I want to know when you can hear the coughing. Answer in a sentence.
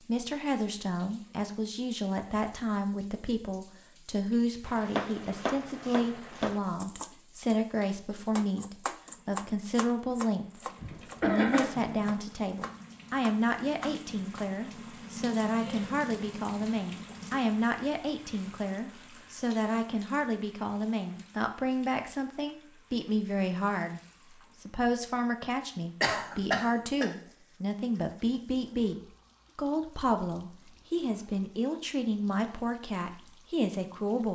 You can hear the coughing from 10.8 to 12.2 s and from 26.0 to 27.1 s.